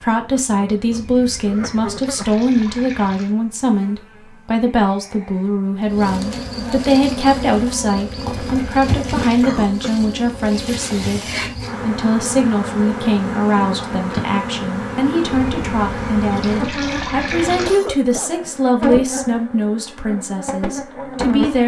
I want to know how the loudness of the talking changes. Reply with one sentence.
The loudness of the talking stays about the same.